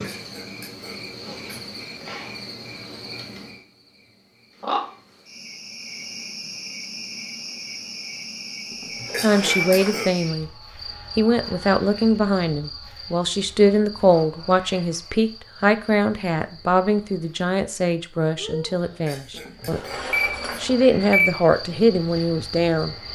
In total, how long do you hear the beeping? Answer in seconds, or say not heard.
3 s.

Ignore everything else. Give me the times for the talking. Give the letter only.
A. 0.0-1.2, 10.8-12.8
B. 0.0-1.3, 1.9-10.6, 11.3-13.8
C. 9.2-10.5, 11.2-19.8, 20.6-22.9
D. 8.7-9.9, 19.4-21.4
C.